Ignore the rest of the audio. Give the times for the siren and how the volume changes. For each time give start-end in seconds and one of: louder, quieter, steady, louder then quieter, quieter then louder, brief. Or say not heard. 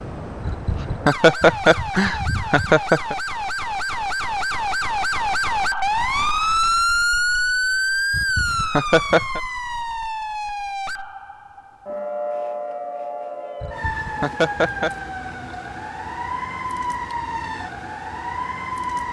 0.0-19.0 louder then quieter.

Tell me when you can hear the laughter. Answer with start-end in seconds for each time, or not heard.
0.5-3.1, 8.1-9.4, 13.6-14.9.